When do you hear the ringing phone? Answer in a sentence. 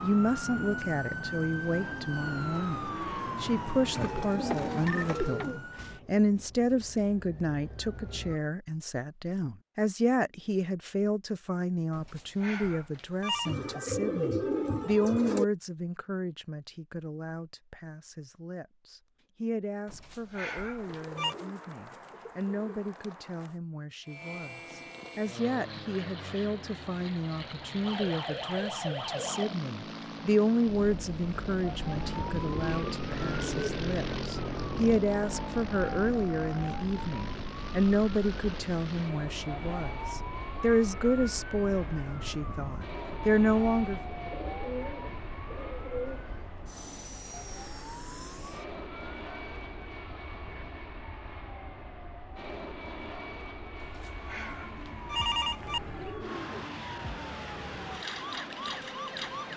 The ringing phone can be heard from 11.9 to 13.6 s, from 19.9 to 21.4 s and from 53.8 to 55.8 s.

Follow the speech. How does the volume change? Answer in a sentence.
The volume of the speech goes down, then up.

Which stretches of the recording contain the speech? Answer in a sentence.
You can hear the speech from 0.0 to 44.0 s.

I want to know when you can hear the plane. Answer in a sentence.
You can hear the plane from 24.0 to 59.5 s.